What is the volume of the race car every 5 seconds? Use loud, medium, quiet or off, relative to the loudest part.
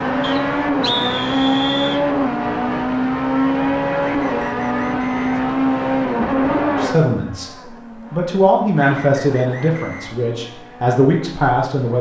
loud, loud, quiet.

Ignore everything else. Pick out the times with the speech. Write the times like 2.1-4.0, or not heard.
6.6-11.9.